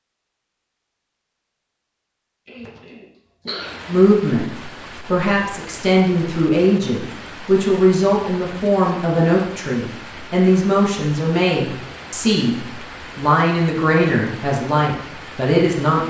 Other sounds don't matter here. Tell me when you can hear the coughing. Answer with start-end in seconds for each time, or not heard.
2.5-3.9.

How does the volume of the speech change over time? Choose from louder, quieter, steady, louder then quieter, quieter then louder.
steady.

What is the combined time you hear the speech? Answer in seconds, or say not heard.
12 s.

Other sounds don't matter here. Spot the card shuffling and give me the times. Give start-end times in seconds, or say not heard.
not heard.